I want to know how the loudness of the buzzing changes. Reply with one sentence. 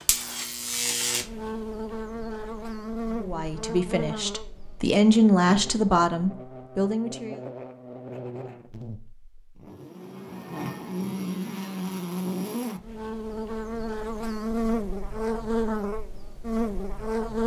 The loudness of the buzzing goes down, then up.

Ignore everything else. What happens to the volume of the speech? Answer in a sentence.
The loudness of the speech goes up, then down.